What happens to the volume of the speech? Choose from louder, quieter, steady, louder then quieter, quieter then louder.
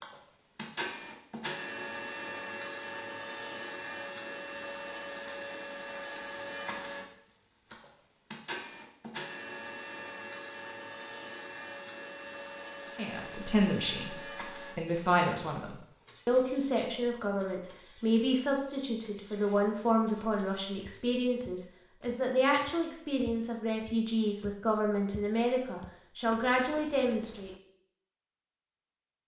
steady.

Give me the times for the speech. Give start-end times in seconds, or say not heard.
12.9-27.5.